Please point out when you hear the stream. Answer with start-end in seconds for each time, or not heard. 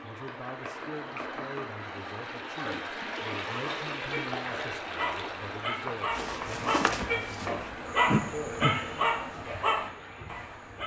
0.0-10.8.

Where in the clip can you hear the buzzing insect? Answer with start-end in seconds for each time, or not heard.
6.1-10.8.